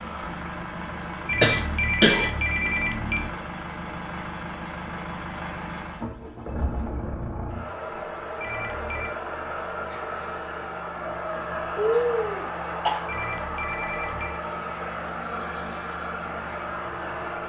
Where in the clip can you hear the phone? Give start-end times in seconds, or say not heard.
1.2-3.3, 8.4-9.1, 13.1-14.4.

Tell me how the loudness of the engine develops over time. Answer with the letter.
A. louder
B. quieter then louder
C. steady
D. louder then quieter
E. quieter
C.